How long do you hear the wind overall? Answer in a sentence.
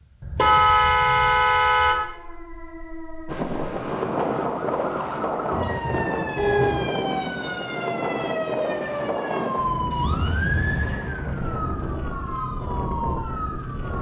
The wind can be heard for 11 seconds in total.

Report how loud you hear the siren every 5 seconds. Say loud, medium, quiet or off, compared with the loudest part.
medium, loud, loud.